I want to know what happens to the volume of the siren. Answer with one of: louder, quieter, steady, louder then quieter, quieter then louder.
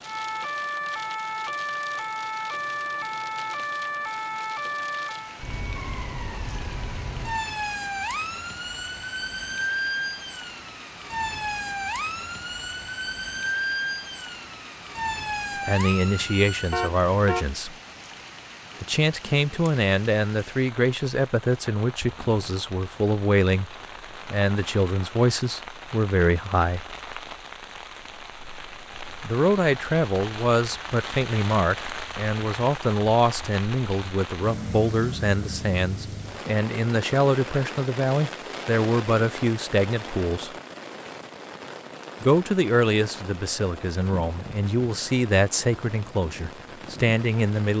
steady.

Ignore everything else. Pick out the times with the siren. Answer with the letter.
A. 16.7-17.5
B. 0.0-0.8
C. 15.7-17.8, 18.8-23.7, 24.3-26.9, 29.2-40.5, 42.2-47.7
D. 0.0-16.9
D.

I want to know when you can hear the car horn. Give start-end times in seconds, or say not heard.
16.7-17.5.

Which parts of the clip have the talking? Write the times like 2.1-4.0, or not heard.
15.7-17.8, 18.8-23.7, 24.3-26.9, 29.2-40.5, 42.2-47.7.